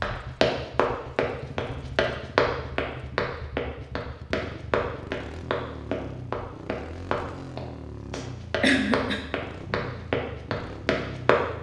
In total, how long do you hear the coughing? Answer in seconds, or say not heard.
2 s.